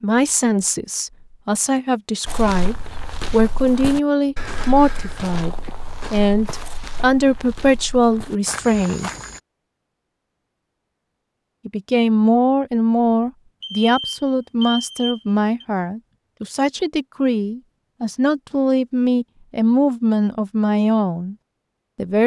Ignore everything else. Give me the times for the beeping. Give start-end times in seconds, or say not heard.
13.6-15.7.